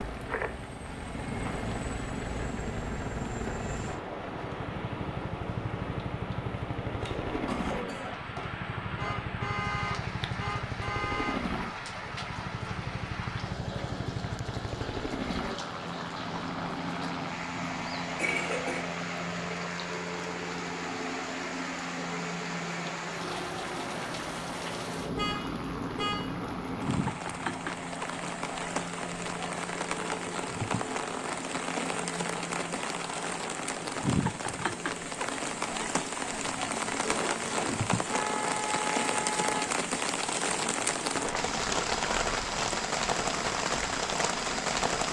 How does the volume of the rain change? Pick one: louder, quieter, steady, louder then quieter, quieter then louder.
louder.